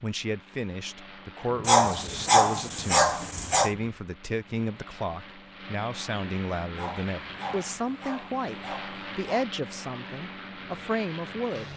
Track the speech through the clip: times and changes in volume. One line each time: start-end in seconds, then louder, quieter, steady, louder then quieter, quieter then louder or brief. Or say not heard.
0.0-11.7 steady.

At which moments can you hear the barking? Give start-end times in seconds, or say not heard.
1.6-3.8, 6.8-9.5.